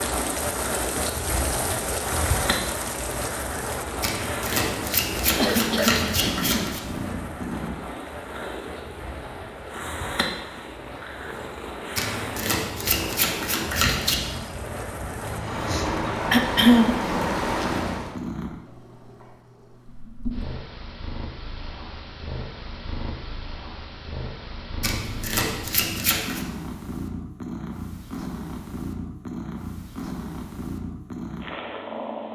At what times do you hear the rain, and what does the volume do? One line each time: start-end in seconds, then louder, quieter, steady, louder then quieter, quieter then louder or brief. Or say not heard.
0.0-18.1 quieter then louder.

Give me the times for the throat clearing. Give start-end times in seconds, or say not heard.
5.3-6.7, 16.3-16.9.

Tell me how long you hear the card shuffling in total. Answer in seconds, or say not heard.
7 s.